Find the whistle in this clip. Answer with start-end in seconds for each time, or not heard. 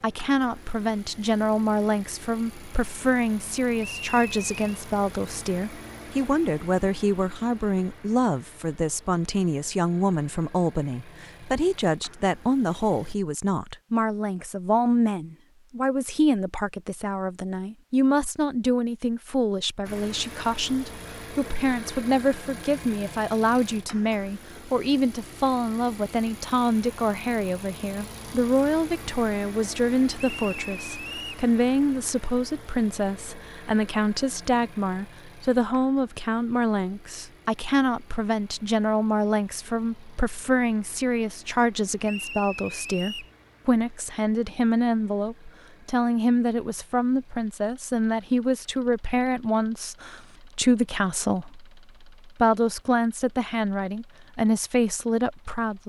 3.8-4.8, 30.1-31.4, 42.0-43.4.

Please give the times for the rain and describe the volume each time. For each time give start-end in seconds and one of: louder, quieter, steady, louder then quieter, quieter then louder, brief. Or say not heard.
not heard.